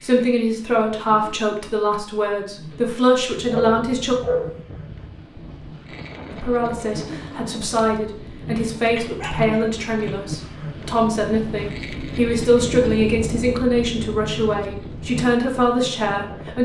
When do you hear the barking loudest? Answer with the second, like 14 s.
4 s.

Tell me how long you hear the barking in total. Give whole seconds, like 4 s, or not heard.
2 s.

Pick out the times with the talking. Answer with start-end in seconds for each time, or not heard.
0.0-4.2, 6.3-16.5.